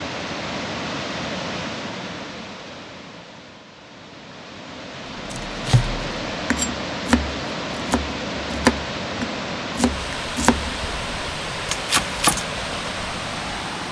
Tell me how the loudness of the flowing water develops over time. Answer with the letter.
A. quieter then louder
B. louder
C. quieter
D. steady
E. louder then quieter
A.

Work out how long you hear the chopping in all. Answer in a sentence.
The chopping can be heard for 7 seconds in total.